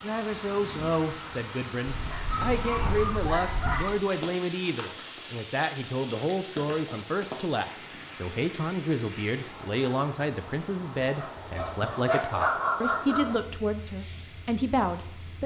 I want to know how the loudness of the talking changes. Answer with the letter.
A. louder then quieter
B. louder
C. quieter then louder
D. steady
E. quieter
D.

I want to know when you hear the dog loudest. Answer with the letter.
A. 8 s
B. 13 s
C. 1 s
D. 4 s
B.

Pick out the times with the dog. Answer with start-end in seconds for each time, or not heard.
1.9-4.0, 11.0-13.3.